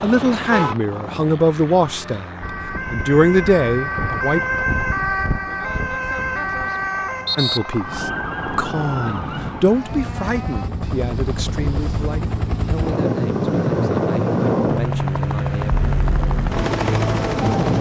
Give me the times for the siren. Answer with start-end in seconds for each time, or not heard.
2.4-10.7.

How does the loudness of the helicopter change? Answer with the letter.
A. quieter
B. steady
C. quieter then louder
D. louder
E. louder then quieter
D.